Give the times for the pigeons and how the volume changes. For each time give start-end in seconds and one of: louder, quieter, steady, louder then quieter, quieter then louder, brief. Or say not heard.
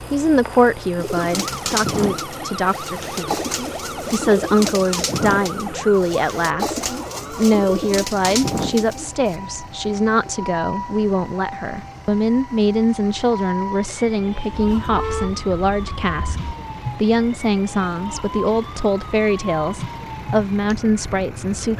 0.9-9.3 steady.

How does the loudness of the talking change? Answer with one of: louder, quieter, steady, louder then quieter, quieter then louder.
steady.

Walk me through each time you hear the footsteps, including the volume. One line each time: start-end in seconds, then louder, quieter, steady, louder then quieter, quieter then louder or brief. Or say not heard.
not heard.